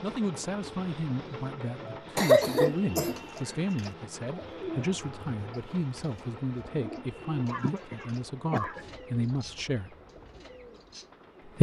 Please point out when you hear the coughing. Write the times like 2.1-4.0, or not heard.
2.1-3.1, 7.2-9.0.